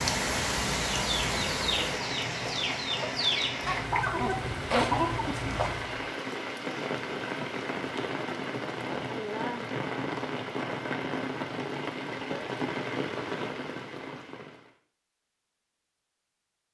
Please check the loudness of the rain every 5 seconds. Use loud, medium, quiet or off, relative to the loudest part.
loud, loud, loud, off.